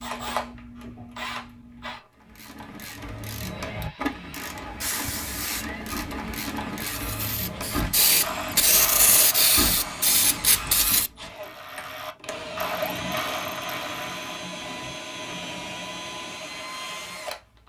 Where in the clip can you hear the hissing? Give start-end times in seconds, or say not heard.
4.4-11.1.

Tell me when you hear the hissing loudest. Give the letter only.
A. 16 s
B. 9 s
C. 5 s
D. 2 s
B.